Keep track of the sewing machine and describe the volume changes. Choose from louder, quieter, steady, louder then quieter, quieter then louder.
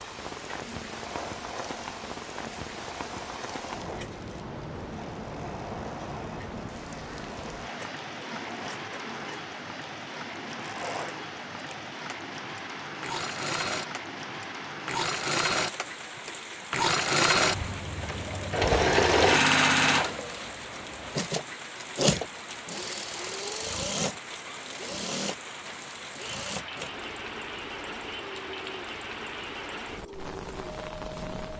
louder then quieter.